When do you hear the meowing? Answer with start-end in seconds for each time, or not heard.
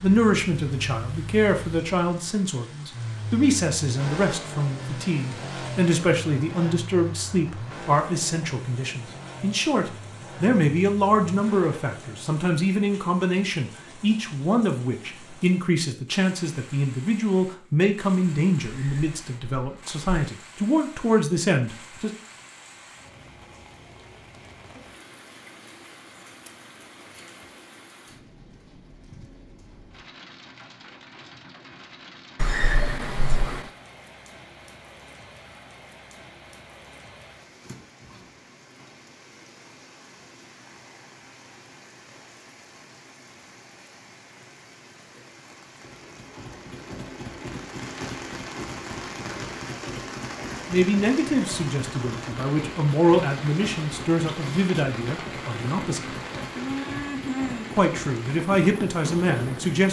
18.6-20.0, 32.4-33.6.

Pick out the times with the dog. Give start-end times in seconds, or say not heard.
not heard.